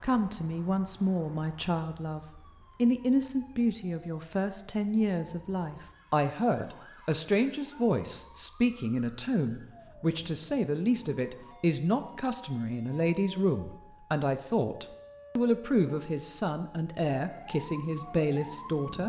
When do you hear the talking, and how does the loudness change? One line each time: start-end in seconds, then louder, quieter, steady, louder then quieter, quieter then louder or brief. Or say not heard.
0.0-19.0 steady.